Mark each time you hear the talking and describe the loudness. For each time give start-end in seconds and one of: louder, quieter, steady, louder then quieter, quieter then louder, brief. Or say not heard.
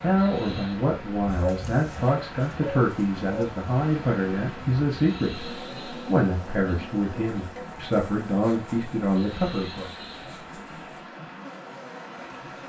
0.0-9.9 steady.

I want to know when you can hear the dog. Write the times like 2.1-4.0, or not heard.
1.2-3.5.